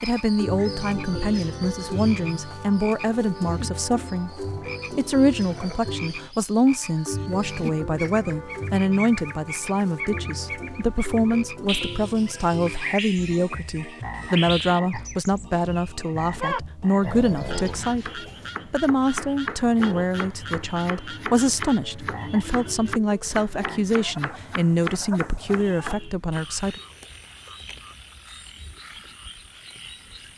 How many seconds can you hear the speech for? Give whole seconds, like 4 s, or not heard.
27 s.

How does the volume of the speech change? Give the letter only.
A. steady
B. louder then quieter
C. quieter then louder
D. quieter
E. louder
A.